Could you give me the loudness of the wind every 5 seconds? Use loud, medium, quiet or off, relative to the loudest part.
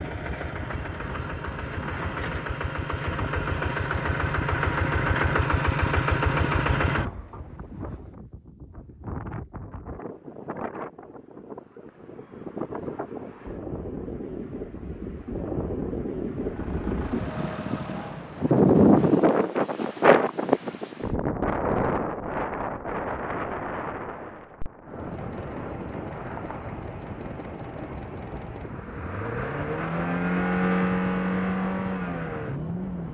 quiet, quiet, quiet, loud, loud, quiet, quiet.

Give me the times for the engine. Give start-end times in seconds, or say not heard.
0.0-8.1, 16.4-18.3, 24.9-33.0.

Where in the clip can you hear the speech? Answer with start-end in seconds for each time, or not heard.
not heard.